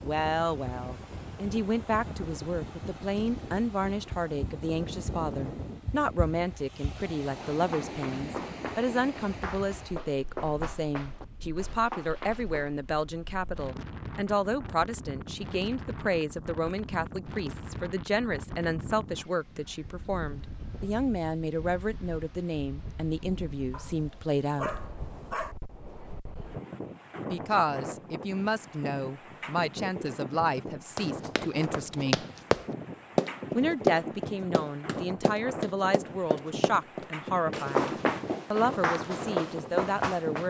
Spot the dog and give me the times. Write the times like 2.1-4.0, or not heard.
23.7-25.6.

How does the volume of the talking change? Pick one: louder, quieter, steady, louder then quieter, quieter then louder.
steady.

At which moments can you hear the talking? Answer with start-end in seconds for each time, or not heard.
0.0-24.8, 27.3-32.2, 33.5-40.4.